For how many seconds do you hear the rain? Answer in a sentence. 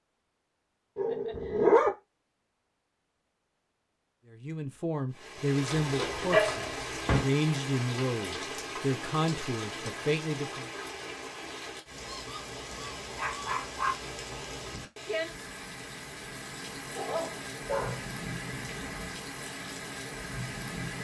The rain can be heard for 16 seconds in total.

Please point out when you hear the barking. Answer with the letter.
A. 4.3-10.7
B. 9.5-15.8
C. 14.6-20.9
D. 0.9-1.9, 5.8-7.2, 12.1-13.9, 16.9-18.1
D.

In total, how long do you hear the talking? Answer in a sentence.
You can hear the talking for 6 seconds altogether.